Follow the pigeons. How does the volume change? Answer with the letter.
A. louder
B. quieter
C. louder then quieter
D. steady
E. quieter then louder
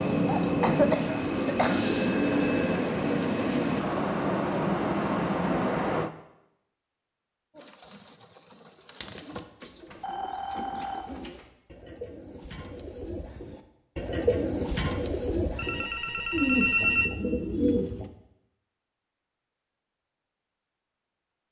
A.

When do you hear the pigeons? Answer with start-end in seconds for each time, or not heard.
7.5-18.1.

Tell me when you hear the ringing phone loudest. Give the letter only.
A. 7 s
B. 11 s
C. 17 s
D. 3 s
C.